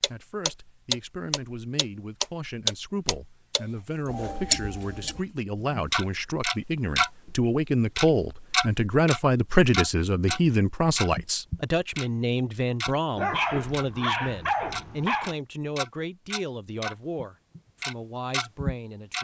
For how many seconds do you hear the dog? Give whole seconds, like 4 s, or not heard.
4 s.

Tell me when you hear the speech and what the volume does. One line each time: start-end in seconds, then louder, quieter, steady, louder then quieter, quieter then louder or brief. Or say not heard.
0.0-19.1 louder then quieter.